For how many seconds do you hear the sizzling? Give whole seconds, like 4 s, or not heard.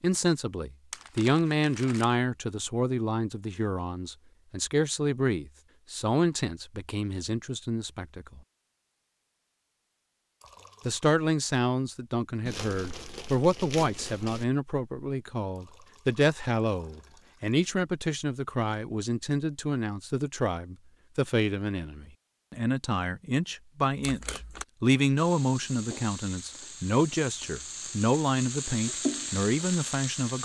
5 s.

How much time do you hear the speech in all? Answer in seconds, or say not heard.
28 s.